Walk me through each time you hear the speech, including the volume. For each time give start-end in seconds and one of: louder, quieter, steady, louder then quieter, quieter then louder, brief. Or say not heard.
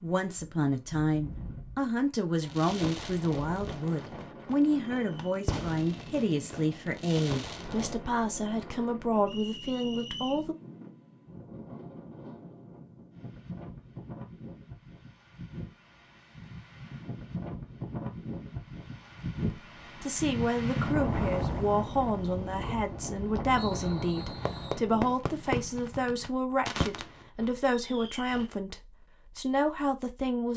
0.0-10.6 steady
19.4-30.5 steady.